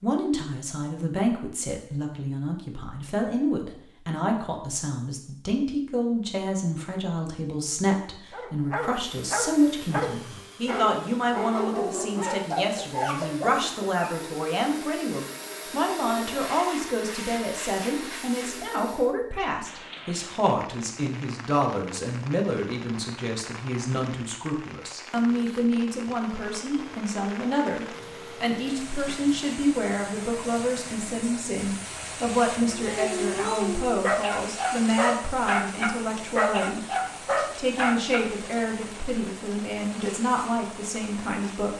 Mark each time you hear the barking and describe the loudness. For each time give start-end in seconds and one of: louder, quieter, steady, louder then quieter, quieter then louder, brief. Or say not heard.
8.3-14.2 steady
32.8-38.3 steady.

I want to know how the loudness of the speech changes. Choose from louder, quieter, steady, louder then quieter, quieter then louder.
steady.